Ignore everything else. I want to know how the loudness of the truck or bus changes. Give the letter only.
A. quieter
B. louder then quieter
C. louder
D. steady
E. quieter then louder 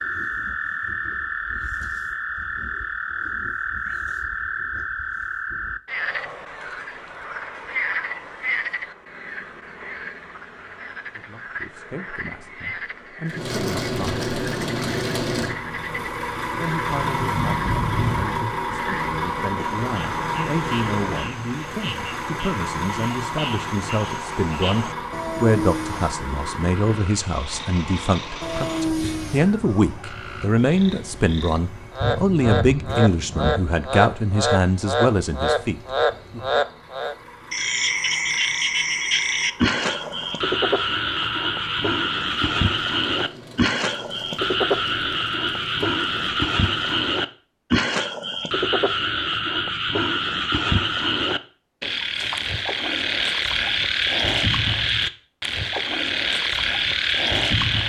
A.